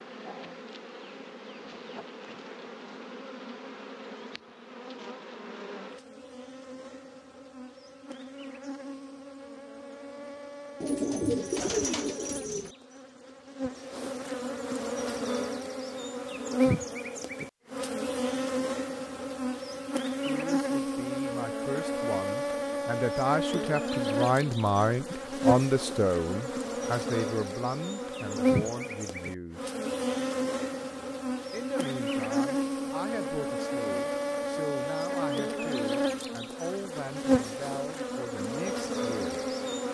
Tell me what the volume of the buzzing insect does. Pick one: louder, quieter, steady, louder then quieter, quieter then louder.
louder.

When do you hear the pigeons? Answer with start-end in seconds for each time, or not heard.
10.8-12.8.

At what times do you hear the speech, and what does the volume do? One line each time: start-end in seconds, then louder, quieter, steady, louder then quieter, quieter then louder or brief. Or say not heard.
20.2-29.7 louder then quieter
31.5-39.5 steady.